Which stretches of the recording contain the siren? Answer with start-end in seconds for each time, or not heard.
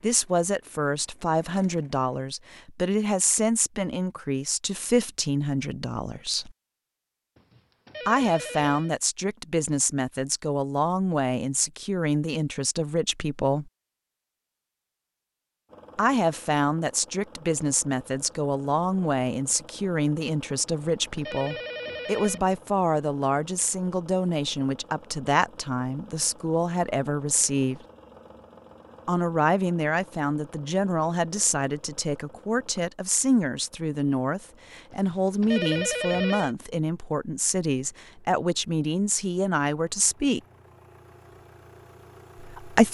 not heard.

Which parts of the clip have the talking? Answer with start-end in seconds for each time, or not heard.
0.0-6.5, 8.1-13.7, 15.9-27.8, 29.1-40.4, 42.4-42.8.